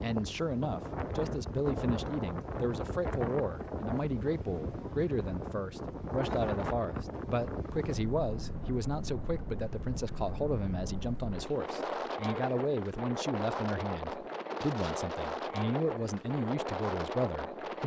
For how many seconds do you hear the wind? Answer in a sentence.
The wind can be heard for 18 seconds in total.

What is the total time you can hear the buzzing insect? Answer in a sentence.
The buzzing insect can't be heard in this clip.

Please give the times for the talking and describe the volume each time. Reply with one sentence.
The talking can be heard from 0.0 to 17.8 s, at a steady volume.